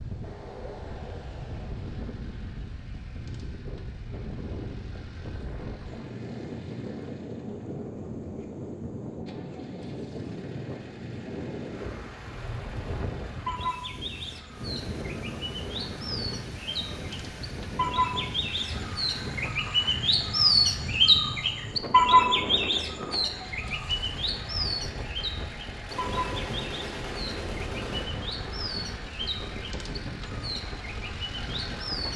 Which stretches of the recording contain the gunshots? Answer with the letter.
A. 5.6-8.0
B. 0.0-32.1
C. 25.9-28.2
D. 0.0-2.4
C.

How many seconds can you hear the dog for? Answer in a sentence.
You can't hear the dog here.